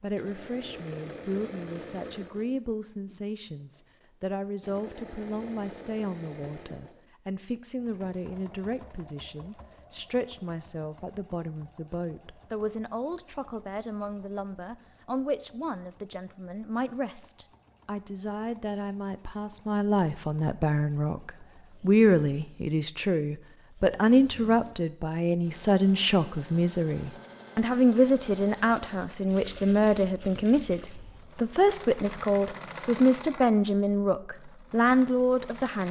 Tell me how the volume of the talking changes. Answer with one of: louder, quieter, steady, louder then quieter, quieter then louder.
louder.